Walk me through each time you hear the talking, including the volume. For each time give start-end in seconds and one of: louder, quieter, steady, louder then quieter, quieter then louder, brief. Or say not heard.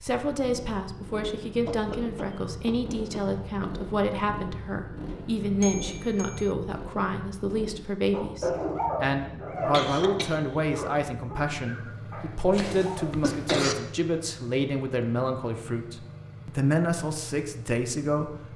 0.0-18.5 steady.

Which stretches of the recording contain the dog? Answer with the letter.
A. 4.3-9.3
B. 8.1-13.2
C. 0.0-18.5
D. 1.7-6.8
B.